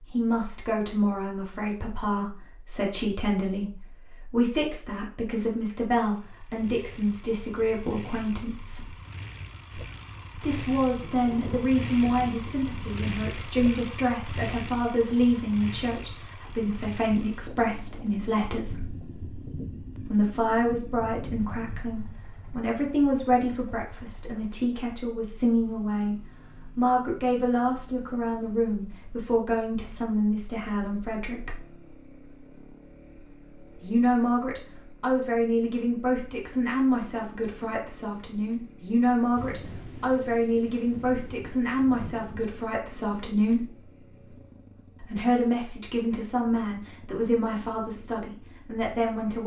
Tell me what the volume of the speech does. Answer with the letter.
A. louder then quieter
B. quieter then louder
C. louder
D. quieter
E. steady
E.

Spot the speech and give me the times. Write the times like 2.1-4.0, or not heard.
0.0-8.9, 10.3-18.9, 20.1-31.6, 33.8-43.6, 45.0-49.4.